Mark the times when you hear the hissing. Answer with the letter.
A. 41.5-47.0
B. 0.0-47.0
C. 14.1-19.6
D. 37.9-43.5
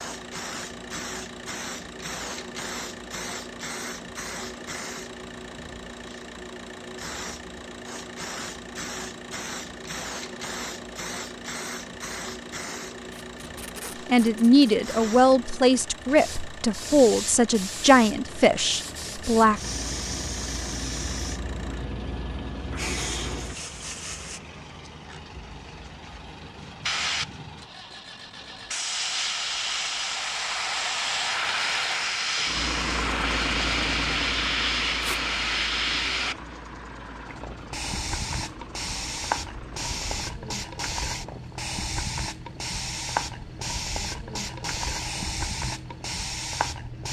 B.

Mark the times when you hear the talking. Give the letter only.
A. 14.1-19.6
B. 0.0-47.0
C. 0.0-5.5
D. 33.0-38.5
A.